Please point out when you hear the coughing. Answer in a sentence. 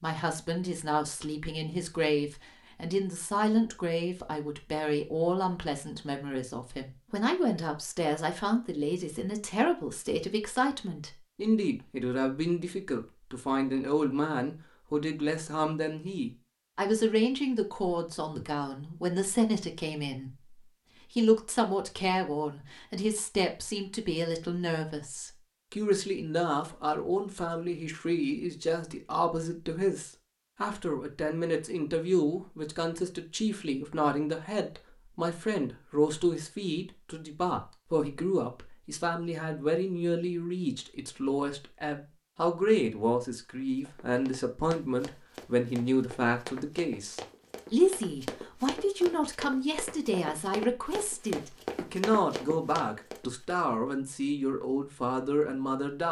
The coughing can't be heard in this clip.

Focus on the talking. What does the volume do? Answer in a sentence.
The loudness of the talking stays about the same.